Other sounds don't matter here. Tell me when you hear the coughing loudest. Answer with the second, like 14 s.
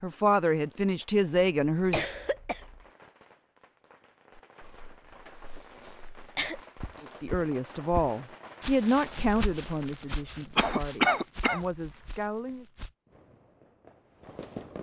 11 s.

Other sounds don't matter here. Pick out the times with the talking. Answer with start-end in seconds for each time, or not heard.
0.0-2.0, 7.0-12.7.